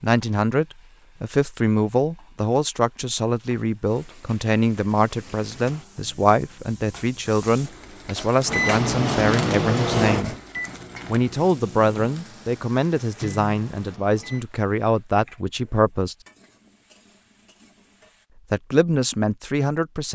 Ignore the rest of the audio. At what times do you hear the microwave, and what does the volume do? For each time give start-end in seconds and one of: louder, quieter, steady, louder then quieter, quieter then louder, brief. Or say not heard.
8.4-14.4 quieter then louder.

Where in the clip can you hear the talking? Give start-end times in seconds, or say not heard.
0.0-10.3, 11.1-16.1, 18.5-20.1.